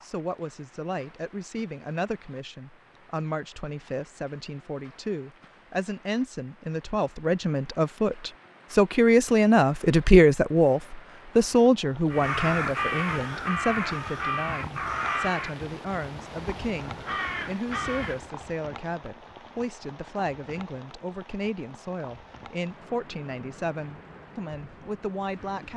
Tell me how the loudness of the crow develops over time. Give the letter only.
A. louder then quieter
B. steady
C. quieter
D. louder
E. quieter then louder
E.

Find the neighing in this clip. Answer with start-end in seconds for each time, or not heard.
not heard.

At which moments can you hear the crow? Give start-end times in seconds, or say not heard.
12.1-18.3.